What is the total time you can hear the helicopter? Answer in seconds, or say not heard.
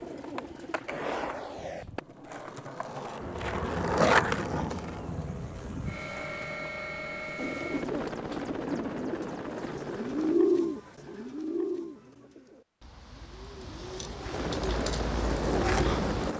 9 s.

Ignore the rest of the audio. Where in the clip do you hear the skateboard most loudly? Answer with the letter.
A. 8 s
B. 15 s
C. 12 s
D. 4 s
D.